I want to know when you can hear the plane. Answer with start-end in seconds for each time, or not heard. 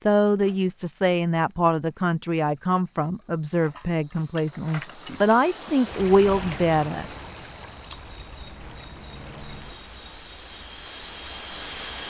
8.2-12.0.